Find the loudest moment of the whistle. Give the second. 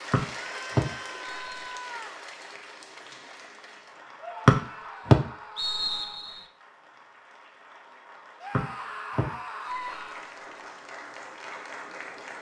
5 s.